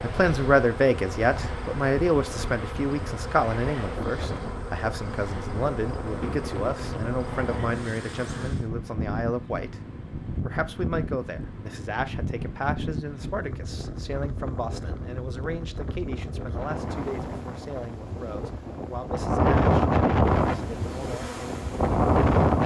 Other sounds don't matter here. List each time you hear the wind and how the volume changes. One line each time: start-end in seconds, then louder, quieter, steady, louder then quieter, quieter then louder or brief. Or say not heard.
0.0-22.6 louder.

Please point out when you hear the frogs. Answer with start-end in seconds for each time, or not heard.
not heard.